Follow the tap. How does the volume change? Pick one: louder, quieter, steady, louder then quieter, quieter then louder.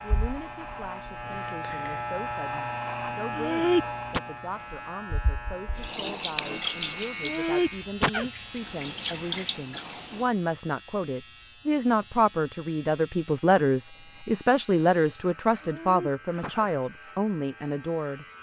quieter then louder.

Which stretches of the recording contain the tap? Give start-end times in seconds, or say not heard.
5.8-10.3.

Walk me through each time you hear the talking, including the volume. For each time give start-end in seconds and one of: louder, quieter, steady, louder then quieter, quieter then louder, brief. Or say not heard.
0.0-18.2 louder.